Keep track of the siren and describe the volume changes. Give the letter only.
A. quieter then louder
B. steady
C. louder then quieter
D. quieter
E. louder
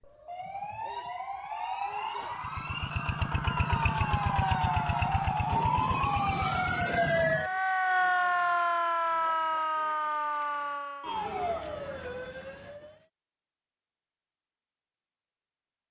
C.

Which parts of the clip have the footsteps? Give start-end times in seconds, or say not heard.
not heard.